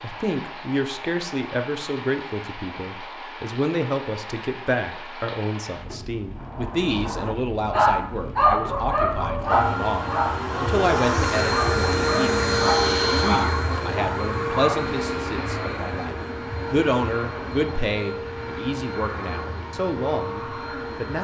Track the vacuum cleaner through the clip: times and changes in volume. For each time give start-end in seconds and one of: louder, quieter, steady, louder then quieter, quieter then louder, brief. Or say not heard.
9.4-21.1 quieter.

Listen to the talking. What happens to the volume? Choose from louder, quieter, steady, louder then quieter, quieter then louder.
steady.